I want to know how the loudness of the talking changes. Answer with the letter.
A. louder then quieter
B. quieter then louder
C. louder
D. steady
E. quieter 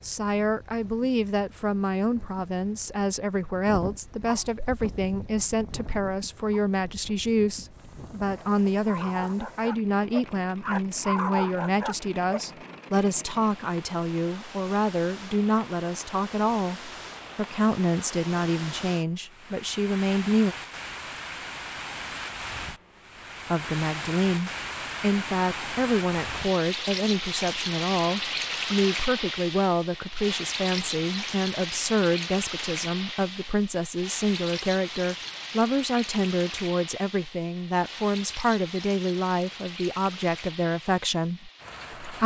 D.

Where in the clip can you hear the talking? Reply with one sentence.
You can hear the talking from 0.0 to 20.6 s and from 23.5 to 42.2 s.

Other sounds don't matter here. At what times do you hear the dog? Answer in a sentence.
You can hear the dog from 3.6 to 12.6 s.